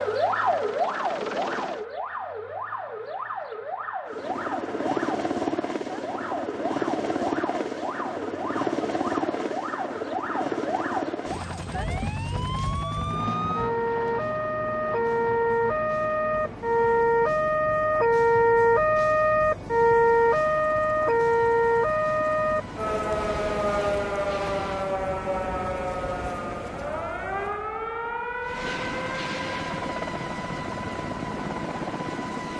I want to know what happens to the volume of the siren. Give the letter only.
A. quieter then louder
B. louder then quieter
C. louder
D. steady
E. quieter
B.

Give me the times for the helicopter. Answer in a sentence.
The helicopter can be heard from 0.0 to 1.9 s, from 4.0 to 25.1 s and from 28.4 to 32.5 s.